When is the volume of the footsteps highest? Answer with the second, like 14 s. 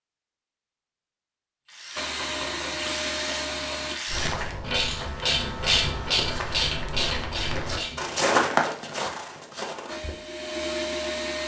8 s.